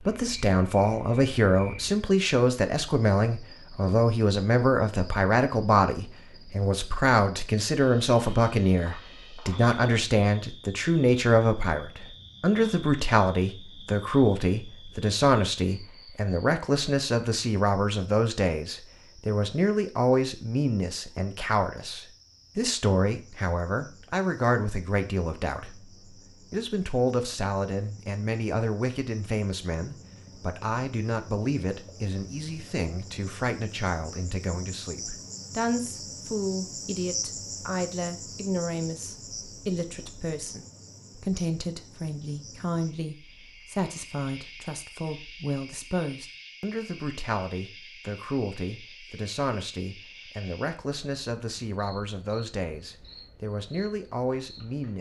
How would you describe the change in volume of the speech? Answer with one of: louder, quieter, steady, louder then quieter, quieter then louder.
quieter.